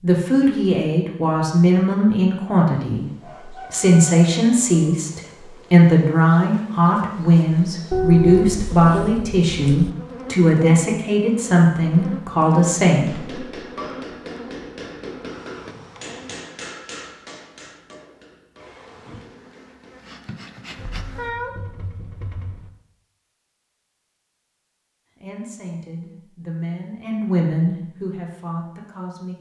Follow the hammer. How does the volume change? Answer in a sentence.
The volume of the hammer goes down.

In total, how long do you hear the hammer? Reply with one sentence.
You can hear the hammer for 7 seconds altogether.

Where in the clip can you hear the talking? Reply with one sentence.
The talking can be heard from 0.0 to 13.4 s and from 25.1 to 29.3 s.